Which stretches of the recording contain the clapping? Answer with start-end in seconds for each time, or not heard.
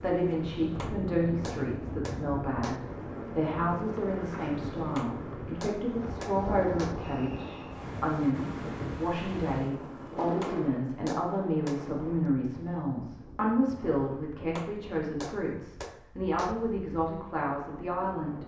0.8-2.8, 5.0-7.0, 10.4-11.9, 14.6-16.6.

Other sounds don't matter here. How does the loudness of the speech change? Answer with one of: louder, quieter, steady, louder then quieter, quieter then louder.
steady.